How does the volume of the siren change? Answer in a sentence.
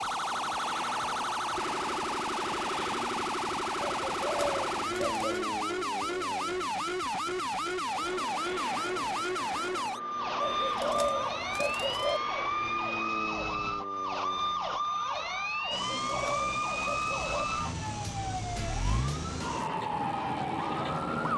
The loudness of the siren stays about the same.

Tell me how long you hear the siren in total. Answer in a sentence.
The siren can be heard for 21 seconds in total.